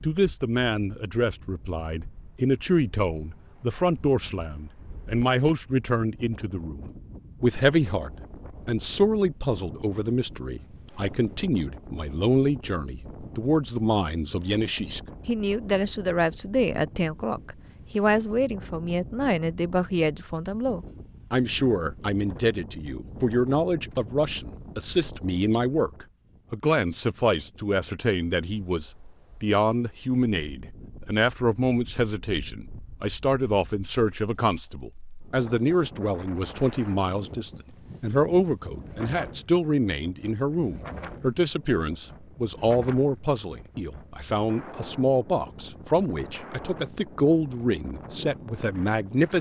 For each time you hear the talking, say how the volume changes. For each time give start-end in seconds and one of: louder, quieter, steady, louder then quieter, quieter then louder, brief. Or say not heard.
0.0-49.3 steady.